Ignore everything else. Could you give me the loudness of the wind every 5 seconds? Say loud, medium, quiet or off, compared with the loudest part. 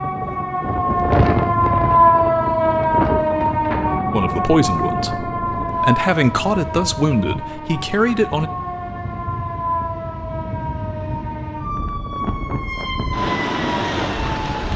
loud, medium, loud.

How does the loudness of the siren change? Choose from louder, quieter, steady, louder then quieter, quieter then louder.
quieter.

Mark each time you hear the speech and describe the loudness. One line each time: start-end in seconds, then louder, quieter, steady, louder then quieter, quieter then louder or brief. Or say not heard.
4.1-8.5 steady.